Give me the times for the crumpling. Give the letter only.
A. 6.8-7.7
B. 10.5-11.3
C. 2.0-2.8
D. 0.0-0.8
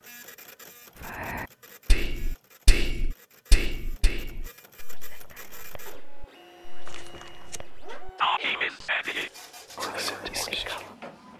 A.